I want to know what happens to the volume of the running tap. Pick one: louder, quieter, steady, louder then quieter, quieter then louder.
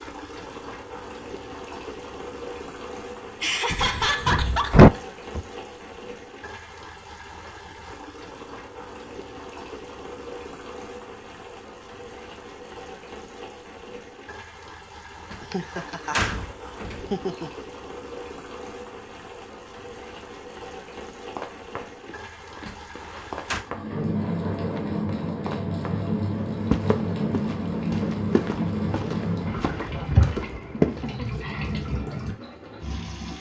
louder.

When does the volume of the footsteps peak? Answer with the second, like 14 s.
31 s.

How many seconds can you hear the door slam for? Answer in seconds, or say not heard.
4 s.